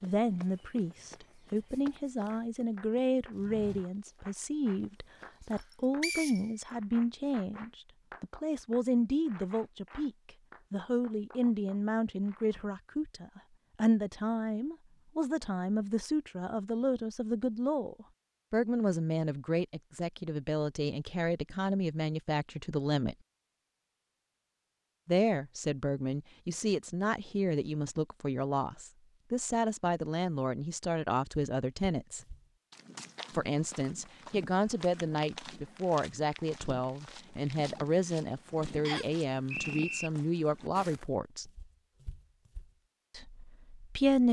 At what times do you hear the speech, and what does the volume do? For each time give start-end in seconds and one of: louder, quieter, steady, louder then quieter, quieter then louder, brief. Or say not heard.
0.0-23.1 steady
25.1-32.2 steady
33.3-41.5 steady
43.1-44.2 brief.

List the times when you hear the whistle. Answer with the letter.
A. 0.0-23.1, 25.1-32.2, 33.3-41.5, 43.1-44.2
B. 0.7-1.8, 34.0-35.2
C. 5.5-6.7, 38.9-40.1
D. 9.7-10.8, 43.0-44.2
C.